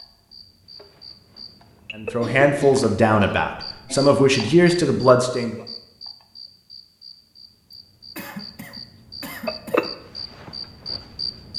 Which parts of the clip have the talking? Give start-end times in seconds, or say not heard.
1.9-5.5.